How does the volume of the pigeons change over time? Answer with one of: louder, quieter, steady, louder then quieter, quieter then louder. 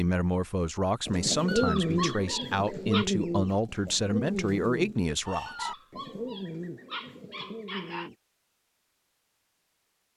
quieter.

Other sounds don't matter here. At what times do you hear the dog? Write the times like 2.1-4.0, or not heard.
1.4-3.0, 5.5-8.1.